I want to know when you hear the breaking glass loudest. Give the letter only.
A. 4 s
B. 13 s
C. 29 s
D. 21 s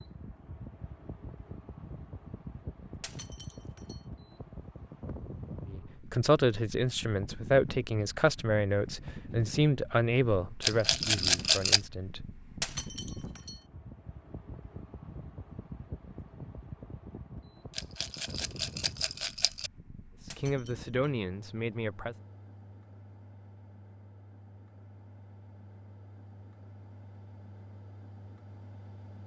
B.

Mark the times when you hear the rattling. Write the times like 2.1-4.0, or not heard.
10.6-11.8, 17.8-19.7.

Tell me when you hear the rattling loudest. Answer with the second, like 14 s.
11 s.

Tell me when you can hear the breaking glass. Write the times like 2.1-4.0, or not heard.
3.0-4.0, 12.6-13.6, 20.2-20.9.